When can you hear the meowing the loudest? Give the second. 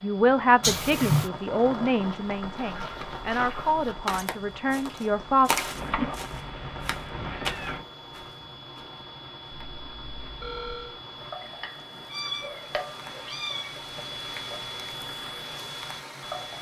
1 s.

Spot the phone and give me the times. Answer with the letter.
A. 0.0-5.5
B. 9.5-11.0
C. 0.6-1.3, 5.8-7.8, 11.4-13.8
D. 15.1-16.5
B.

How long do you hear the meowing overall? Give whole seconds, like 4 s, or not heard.
5 s.